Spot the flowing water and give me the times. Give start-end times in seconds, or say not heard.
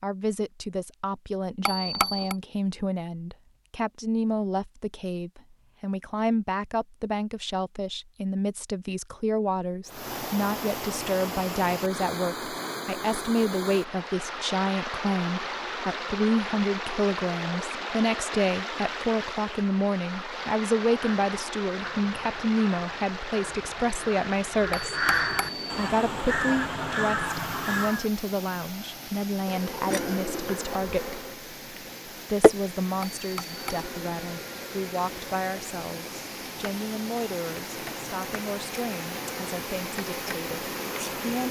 9.8-41.4.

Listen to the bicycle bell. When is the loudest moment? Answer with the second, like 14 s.
2 s.